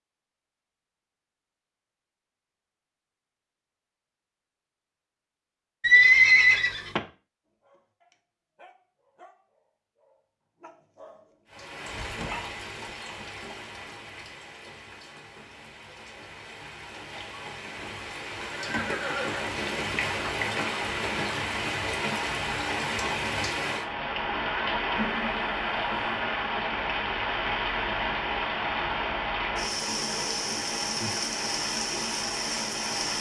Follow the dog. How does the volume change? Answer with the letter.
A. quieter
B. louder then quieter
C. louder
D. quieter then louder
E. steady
D.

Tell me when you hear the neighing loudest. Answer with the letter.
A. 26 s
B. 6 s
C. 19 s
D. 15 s
B.